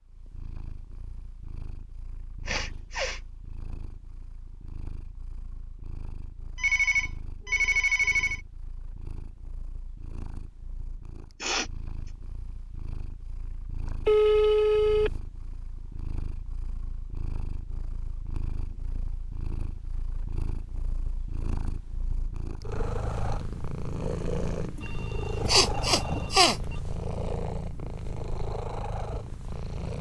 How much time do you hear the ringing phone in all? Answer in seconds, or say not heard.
5 s.